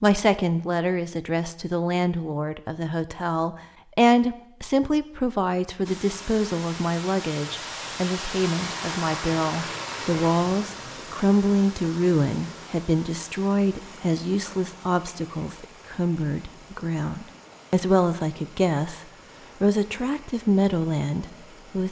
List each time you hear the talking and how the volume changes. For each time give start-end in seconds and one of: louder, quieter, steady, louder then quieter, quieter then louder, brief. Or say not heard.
0.0-19.0 steady
19.6-21.8 brief.